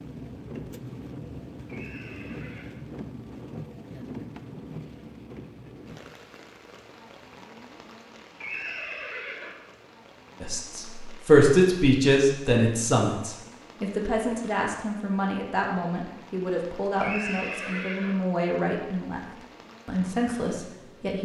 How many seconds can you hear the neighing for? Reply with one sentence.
You can hear the neighing for 4 seconds altogether.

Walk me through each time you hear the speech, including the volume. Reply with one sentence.
You can hear the speech from 10.4 to 21.1 s, getting quieter.